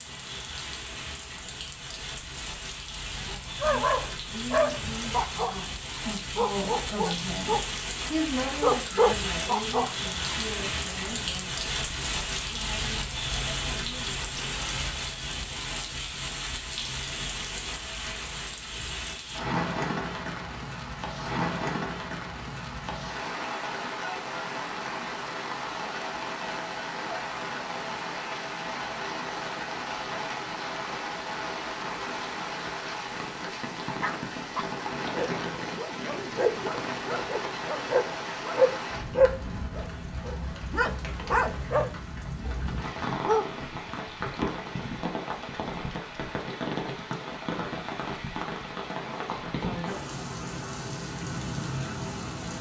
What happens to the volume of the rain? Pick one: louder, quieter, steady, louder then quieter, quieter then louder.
steady.